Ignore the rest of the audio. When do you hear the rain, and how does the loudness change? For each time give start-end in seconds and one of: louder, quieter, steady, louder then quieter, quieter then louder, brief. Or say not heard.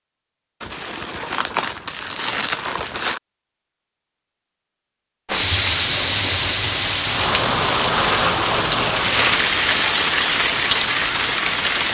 5.2-11.8 steady.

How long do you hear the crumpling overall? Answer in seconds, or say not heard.
5 s.